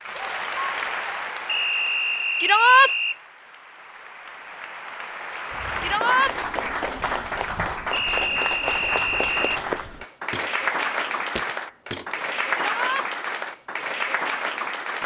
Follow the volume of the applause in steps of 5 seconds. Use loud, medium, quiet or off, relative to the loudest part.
medium, loud, loud.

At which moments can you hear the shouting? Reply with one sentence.
You can hear the shouting from 2.4 to 2.9 s, from 5.8 to 6.3 s and from 12.5 to 13.1 s.